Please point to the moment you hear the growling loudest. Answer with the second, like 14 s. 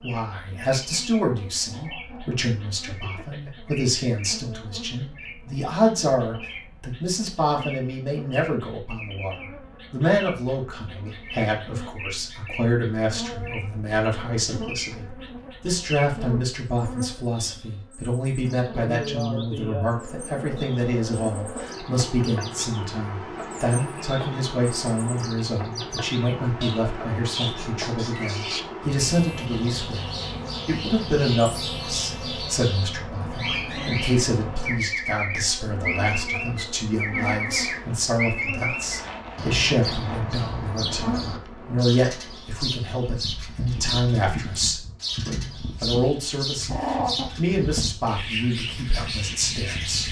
47 s.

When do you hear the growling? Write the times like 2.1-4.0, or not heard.
1.6-3.5, 46.7-47.3.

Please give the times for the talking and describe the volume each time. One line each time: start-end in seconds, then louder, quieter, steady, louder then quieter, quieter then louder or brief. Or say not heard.
0.0-50.0 steady.